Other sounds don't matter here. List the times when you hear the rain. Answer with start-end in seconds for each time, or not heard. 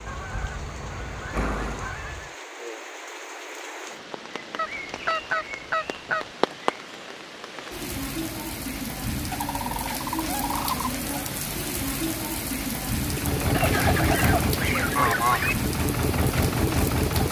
0.0-17.2.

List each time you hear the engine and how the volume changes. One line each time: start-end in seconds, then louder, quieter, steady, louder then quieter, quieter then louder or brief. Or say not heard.
0.0-1.9 brief
12.9-17.2 quieter then louder.